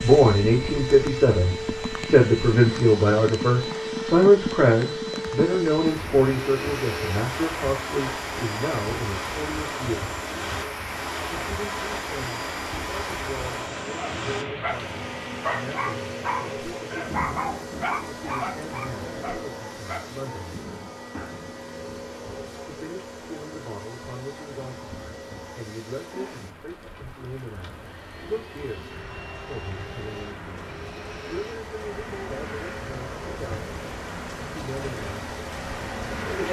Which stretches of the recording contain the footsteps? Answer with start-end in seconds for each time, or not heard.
not heard.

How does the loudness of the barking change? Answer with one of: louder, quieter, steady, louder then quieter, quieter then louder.
quieter.